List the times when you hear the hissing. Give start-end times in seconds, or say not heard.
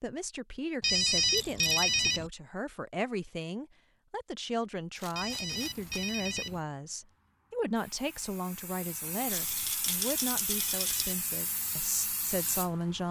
5.5-13.0.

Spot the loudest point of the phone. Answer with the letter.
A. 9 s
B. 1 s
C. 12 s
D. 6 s
B.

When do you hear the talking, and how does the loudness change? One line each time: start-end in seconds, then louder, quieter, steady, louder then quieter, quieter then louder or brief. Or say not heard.
0.0-13.0 steady.